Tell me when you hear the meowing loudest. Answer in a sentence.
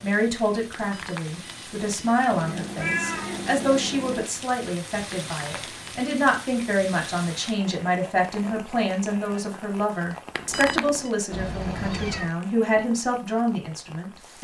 The volume of the meowing peaks at 3 seconds.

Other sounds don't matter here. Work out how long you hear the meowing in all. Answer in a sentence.
You can hear the meowing for 3 seconds altogether.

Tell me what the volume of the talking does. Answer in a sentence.
The loudness of the talking stays about the same.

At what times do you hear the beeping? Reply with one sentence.
The beeping can be heard from 0.7 to 2.2 s, from 5.2 to 6.0 s and from 10.3 to 11.2 s.